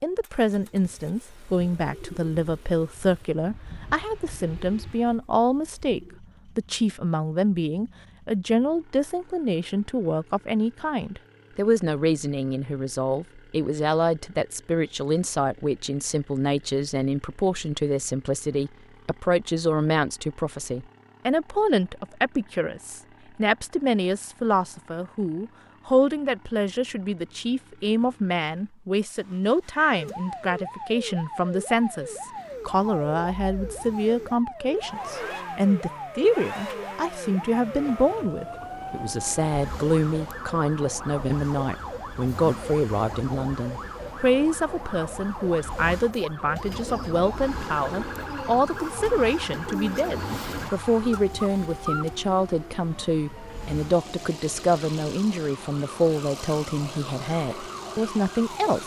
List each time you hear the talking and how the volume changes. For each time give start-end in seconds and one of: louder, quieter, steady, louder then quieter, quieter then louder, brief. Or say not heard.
0.0-58.8 steady.